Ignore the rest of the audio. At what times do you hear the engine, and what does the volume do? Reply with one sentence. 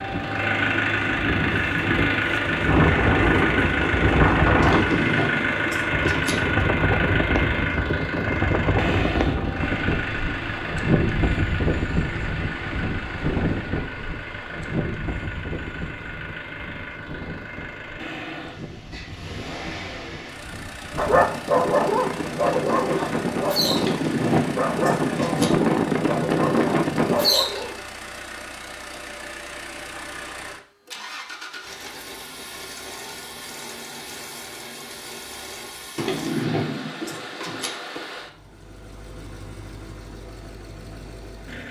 The engine can be heard from 0.0 to 41.6 s, getting quieter.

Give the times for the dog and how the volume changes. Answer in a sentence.
The dog can be heard from 20.9 to 27.8 s, getting quieter then louder.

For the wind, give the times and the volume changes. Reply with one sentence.
The wind can be heard from 0.0 to 27.3 s, getting quieter then louder.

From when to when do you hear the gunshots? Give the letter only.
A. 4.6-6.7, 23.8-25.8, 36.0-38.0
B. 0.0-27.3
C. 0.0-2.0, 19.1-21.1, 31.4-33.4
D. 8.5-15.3
A.